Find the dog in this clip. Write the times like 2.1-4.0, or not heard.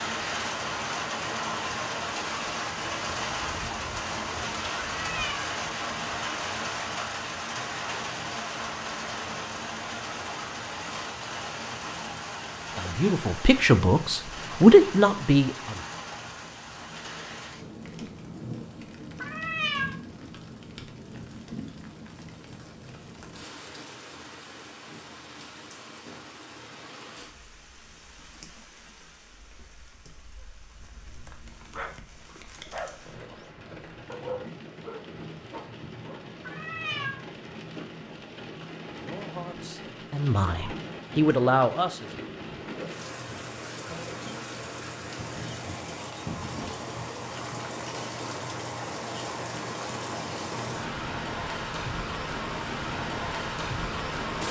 30.6-36.2.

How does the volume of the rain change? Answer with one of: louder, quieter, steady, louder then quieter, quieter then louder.
quieter then louder.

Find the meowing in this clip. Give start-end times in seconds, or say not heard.
5.0-5.5, 19.2-19.9, 36.4-37.2.